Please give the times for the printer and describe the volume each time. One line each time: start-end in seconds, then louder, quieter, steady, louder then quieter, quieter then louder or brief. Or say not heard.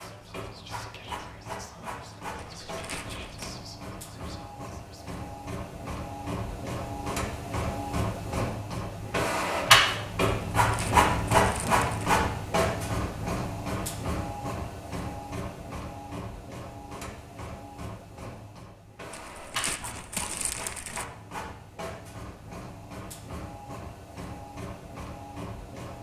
0.0-25.9 louder then quieter.